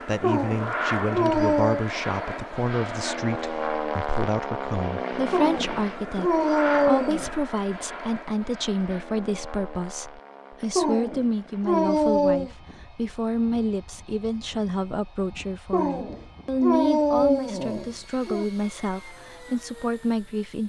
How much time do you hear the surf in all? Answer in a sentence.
The surf can't be heard in this clip.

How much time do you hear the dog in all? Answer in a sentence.
You can hear the dog for 8 seconds altogether.